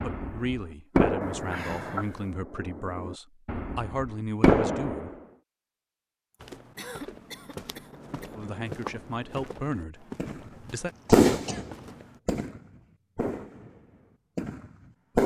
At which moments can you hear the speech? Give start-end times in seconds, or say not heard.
0.0-5.1, 8.3-10.9.